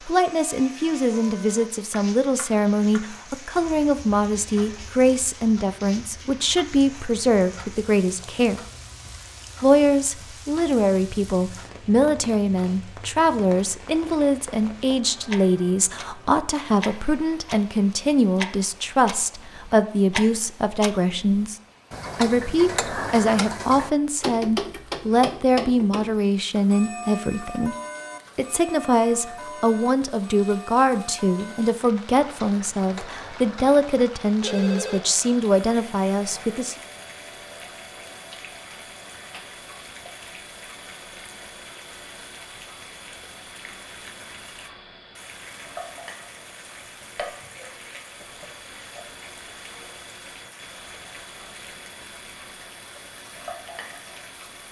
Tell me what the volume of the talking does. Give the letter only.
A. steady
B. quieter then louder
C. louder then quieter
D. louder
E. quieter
A.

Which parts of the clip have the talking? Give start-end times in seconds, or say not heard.
0.1-8.6, 9.6-27.8, 28.4-36.8.